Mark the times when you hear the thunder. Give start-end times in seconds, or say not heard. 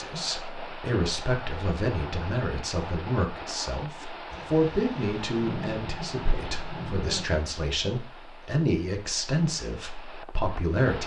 4.2-7.2.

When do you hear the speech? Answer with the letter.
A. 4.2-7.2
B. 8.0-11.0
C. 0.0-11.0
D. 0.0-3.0
C.